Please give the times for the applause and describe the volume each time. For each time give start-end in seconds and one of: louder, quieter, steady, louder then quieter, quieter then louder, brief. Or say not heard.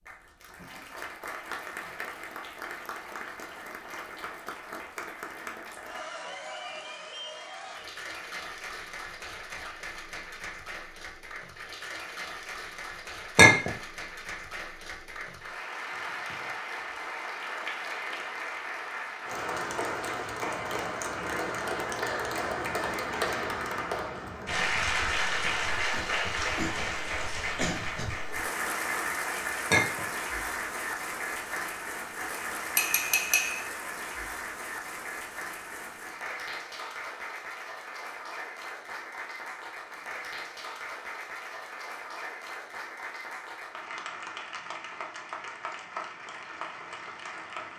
0.0-47.7 louder then quieter.